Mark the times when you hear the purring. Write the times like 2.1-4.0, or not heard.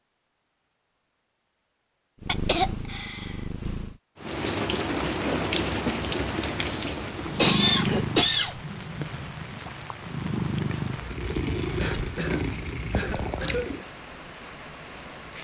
2.2-4.0, 7.2-13.8.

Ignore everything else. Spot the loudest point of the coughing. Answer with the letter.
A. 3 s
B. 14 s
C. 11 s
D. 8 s
D.